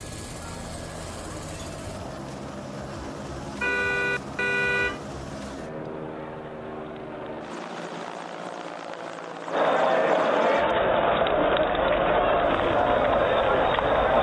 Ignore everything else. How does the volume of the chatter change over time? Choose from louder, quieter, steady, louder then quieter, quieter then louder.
louder.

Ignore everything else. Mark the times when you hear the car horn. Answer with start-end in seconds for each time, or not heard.
3.6-5.0.